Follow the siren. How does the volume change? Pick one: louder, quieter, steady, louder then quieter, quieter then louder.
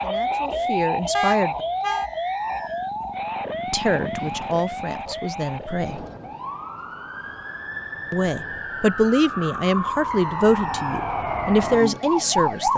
quieter then louder.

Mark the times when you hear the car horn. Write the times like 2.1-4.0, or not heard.
1.1-2.0.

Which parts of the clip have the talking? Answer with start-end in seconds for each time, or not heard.
0.0-1.6, 3.7-6.0, 8.1-12.7.